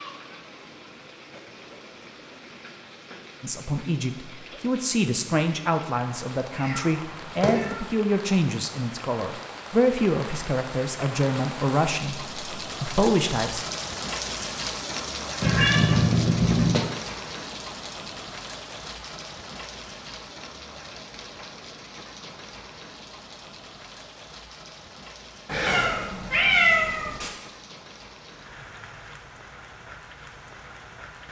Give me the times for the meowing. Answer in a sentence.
You can hear the meowing from 6.5 to 7.9 s, from 15.4 to 16.9 s and from 25.4 to 27.3 s.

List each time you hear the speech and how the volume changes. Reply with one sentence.
The speech can be heard from 3.4 to 13.7 s, at a steady volume.